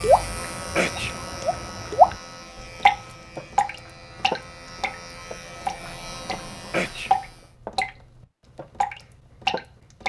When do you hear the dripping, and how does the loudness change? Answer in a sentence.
The dripping can be heard briefly from 0.0 to 2.1 s; from 2.8 to 7.9 s, getting quieter then louder; and briefly from 8.6 to 10.0 s.